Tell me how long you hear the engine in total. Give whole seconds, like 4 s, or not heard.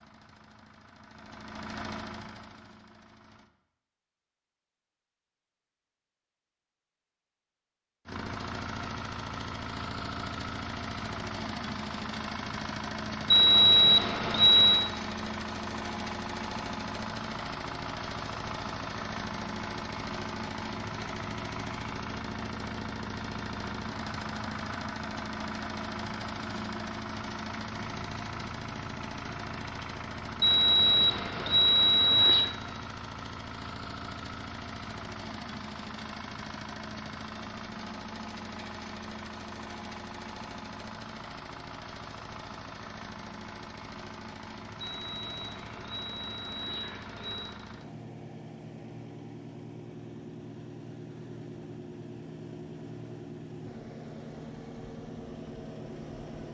52 s.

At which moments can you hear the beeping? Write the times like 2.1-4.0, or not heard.
13.3-14.9, 30.4-32.5, 44.8-47.5.